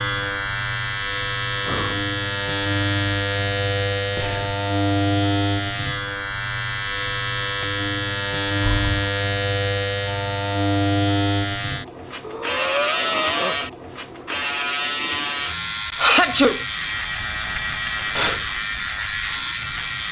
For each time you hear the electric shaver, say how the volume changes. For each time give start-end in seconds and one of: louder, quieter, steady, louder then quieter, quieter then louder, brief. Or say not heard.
0.0-20.0 steady.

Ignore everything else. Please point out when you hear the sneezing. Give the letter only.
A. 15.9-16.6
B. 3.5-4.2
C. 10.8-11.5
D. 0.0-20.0
A.